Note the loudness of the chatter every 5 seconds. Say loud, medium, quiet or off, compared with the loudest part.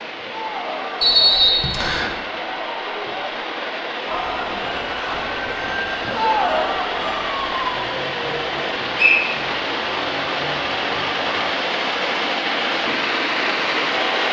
medium, loud, off.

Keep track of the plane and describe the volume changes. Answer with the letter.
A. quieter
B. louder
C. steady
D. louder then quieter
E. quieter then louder
B.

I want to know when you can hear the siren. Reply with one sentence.
You can hear the siren from 4.0 to 11.6 s.